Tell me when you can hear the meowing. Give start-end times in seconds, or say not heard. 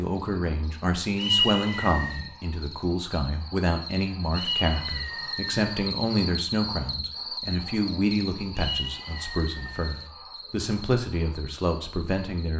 1.1-2.2, 4.3-5.7, 8.6-10.1.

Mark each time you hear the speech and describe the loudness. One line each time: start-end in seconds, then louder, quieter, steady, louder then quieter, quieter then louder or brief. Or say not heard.
0.0-12.5 steady.